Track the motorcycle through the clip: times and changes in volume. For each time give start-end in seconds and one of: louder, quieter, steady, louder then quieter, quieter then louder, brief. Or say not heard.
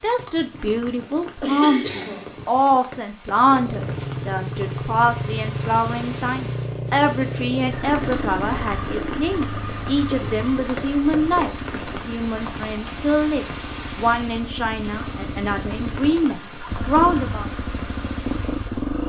3.3-19.0 quieter then louder.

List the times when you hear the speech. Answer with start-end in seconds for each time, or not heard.
0.0-17.4.